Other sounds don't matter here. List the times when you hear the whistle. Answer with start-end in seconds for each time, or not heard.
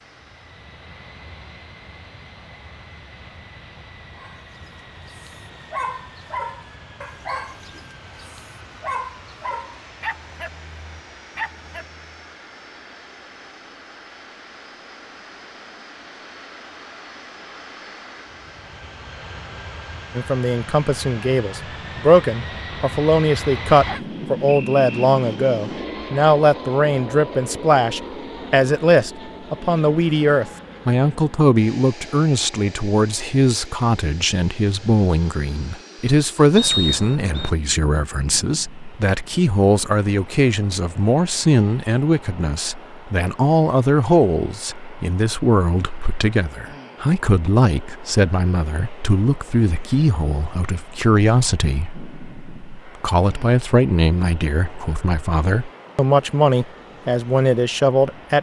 23.8-24.9, 36.5-37.5.